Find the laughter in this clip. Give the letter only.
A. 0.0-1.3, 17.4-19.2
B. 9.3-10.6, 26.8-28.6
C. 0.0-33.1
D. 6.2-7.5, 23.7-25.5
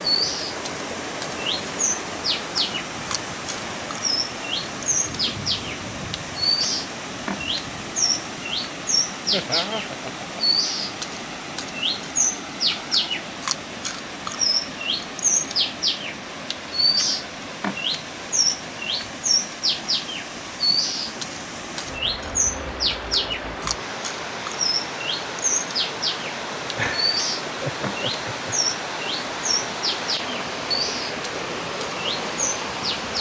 B.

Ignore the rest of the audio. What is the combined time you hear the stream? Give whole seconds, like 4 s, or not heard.
33 s.